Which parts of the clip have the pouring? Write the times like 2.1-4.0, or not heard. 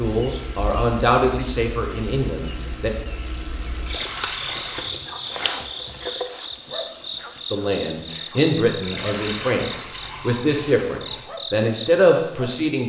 3.9-5.0, 8.8-11.3.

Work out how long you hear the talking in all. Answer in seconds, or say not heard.
8 s.